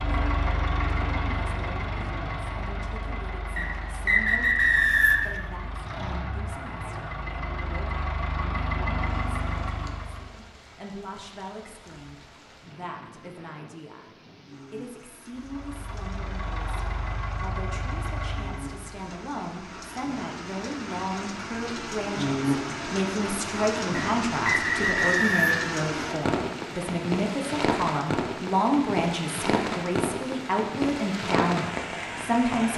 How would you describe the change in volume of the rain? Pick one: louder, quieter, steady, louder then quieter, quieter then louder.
louder.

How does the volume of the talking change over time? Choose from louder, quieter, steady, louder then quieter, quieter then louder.
louder.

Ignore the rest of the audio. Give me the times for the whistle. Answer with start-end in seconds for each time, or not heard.
3.5-5.3, 23.9-25.7.